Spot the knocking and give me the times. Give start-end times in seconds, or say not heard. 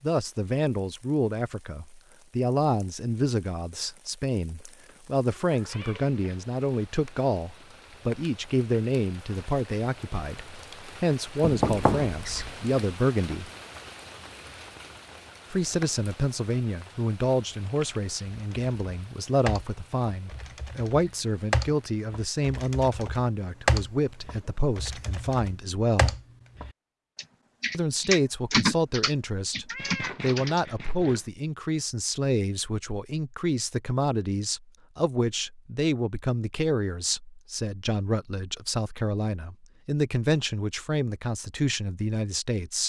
11.4-12.5.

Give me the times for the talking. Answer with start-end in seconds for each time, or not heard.
0.0-13.5, 15.5-26.1, 27.7-42.8.